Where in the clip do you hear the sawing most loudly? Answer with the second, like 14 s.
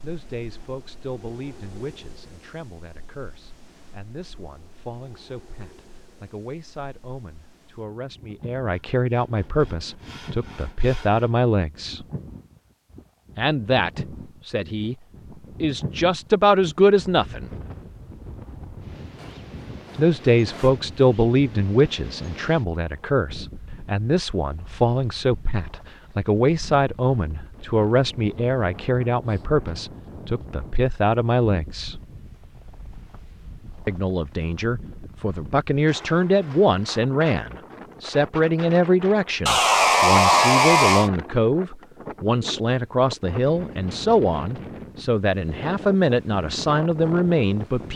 40 s.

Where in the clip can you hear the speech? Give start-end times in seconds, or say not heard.
0.0-12.1, 13.3-14.9, 15.6-17.5, 19.9-32.0, 33.9-47.9.